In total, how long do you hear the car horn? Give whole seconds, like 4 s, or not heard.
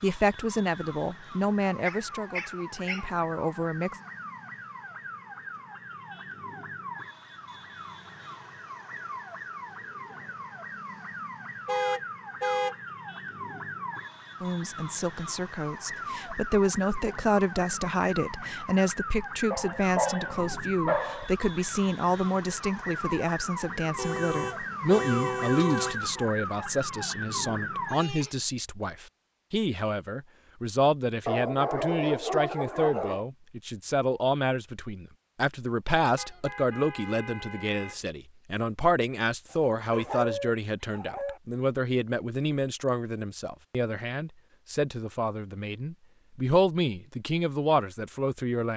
5 s.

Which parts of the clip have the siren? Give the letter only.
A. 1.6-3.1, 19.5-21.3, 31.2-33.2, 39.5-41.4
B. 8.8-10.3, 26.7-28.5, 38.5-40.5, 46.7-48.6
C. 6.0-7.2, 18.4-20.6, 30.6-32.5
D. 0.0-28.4
D.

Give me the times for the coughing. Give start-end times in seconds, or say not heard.
not heard.